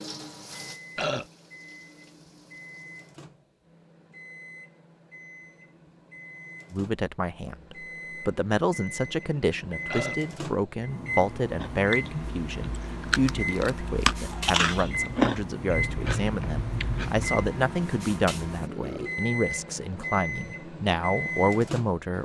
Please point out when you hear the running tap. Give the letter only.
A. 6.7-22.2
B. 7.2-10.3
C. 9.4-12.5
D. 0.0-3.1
D.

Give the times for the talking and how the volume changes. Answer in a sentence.
You can hear the talking from 6.7 to 22.2 s, at a steady volume.